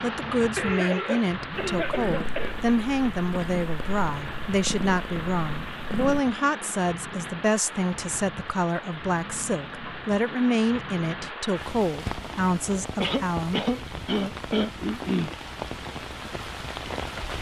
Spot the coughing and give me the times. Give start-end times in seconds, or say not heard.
0.6-2.5, 12.9-15.3.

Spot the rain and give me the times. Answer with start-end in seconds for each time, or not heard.
0.0-17.3.